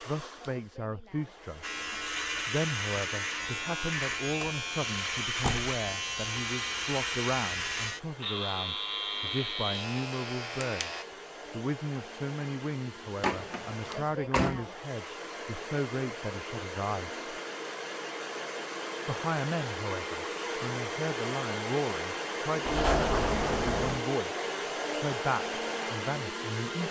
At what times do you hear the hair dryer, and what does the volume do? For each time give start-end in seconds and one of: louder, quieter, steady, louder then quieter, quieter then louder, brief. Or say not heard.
0.0-26.8 louder.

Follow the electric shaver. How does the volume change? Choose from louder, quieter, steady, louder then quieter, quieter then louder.
steady.